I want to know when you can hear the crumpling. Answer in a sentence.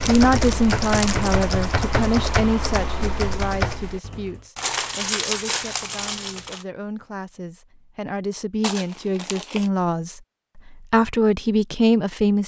The crumpling can be heard from 0.0 to 1.4 s, from 4.5 to 6.7 s and from 8.6 to 9.7 s.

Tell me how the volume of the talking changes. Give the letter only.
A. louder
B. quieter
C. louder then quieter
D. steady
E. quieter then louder
E.